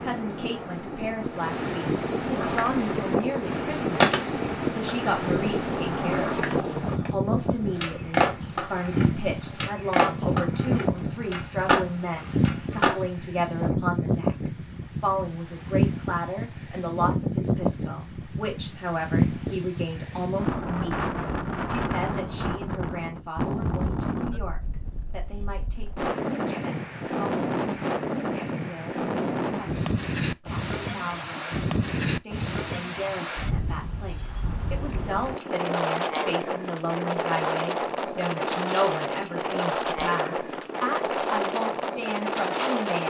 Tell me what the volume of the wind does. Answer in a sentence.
The loudness of the wind stays about the same.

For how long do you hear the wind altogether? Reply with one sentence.
The wind can be heard for 43 seconds in total.